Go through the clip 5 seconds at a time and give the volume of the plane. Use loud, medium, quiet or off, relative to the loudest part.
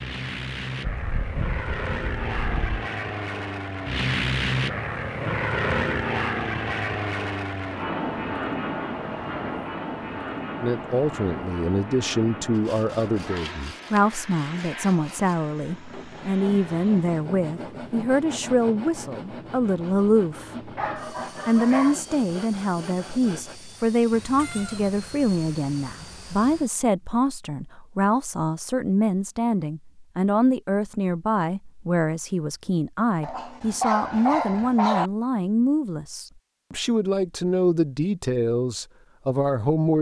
loud, loud, medium, quiet, quiet, quiet, off, off.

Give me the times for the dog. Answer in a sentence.
The dog can be heard from 0.8 to 2.9 s, from 20.8 to 21.9 s and from 33.2 to 35.1 s.